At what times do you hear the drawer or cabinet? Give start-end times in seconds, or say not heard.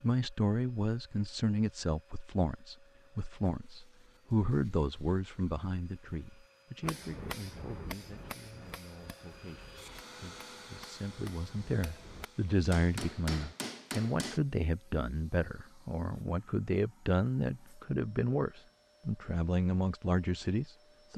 not heard.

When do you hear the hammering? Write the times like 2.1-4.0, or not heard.
6.8-14.4.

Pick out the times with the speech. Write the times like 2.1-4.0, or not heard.
0.0-21.1.